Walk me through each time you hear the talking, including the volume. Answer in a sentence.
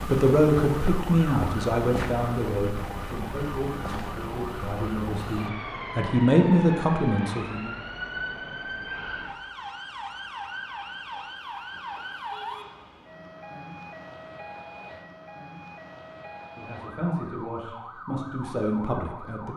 The talking can be heard from 0.1 to 7.8 s, getting quieter then louder; and briefly from 16.6 to 19.5 s.